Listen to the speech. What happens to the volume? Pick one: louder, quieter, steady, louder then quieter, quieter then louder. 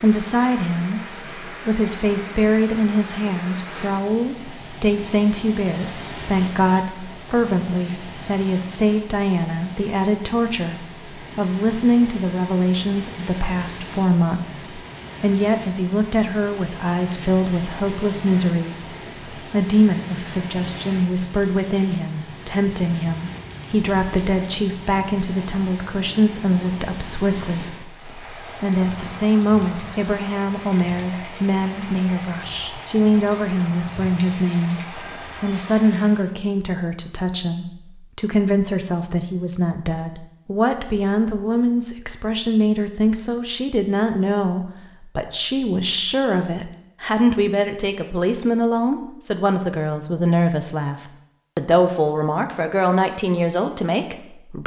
steady.